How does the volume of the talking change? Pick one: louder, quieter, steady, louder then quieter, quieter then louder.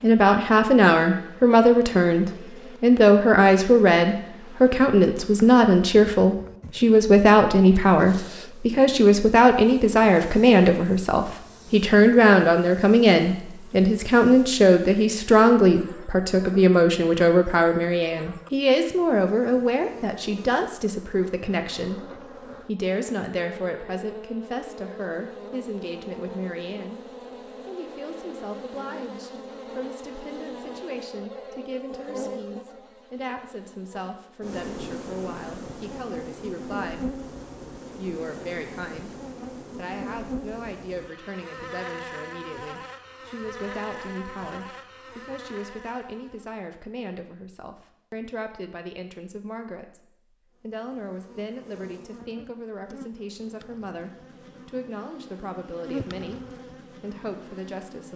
quieter.